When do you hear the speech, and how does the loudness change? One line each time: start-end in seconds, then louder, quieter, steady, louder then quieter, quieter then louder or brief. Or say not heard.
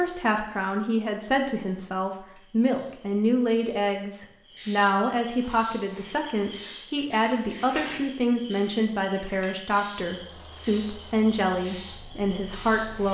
0.0-13.0 steady.